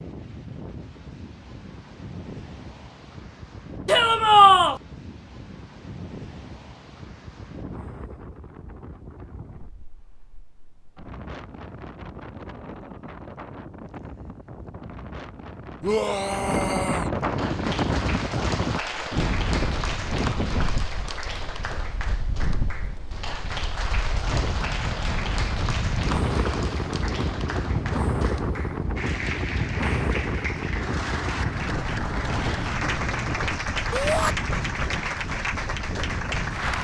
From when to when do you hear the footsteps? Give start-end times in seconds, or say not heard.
not heard.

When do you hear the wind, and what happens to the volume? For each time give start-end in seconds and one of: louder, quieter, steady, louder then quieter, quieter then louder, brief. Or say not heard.
0.0-36.7 louder.